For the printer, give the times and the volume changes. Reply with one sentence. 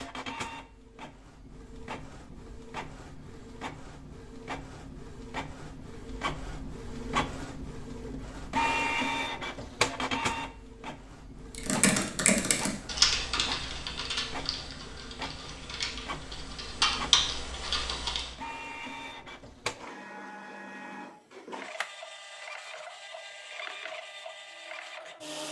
The printer can be heard from 0.0 to 25.4 s, getting louder then quieter.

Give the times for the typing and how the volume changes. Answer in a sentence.
You can hear the typing from 11.5 to 18.2 s, getting quieter then louder.